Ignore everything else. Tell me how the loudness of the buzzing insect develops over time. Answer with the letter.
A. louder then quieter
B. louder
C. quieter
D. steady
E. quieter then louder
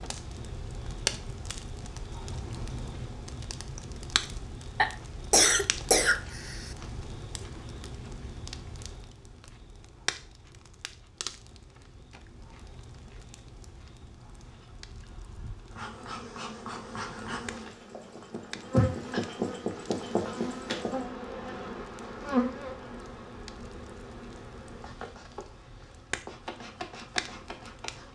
A.